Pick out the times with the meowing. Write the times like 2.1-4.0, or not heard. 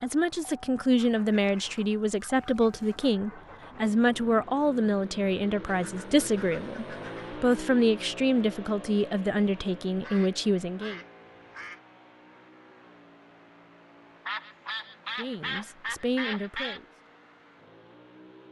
not heard.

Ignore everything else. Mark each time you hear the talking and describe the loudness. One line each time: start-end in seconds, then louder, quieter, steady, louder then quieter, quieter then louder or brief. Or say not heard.
0.0-11.0 steady
15.2-16.9 brief.